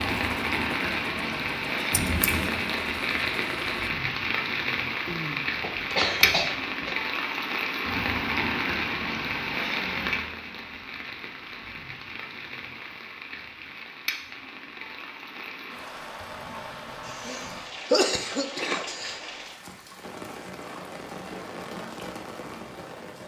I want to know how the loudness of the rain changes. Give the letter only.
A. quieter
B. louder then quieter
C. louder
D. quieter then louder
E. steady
A.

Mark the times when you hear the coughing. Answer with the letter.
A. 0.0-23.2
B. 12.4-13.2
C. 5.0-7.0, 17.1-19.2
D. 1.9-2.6
C.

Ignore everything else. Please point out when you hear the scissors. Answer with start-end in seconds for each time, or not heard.
1.9-2.6.